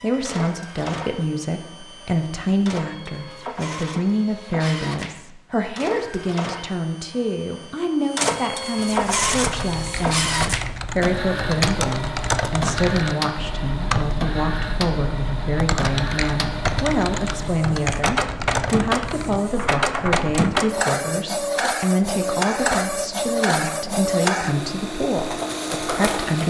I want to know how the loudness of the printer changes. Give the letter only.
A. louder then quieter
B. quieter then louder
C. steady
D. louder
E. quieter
D.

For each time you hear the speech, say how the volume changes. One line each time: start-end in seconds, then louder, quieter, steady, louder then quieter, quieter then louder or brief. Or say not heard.
0.0-26.4 steady.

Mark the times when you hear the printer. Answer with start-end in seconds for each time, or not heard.
0.0-26.4.